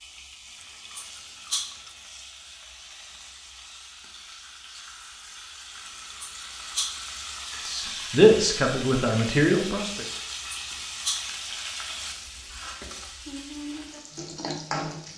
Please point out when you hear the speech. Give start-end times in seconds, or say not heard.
7.7-10.1.